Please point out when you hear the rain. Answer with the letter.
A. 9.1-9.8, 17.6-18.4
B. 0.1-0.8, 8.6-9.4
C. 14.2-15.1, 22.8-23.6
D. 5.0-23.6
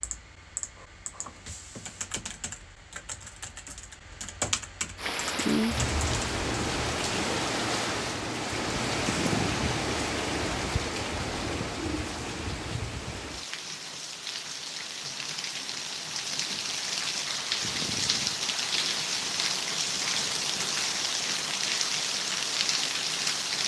D.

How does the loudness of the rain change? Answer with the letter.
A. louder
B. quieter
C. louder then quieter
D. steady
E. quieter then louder
E.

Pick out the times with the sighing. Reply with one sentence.
You can hear the sighing from 9.1 to 9.8 s and from 17.6 to 18.4 s.